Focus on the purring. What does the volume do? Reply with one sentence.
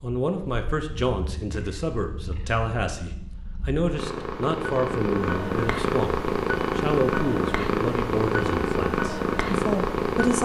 The loudness of the purring goes up.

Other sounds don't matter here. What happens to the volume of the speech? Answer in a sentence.
The loudness of the speech stays about the same.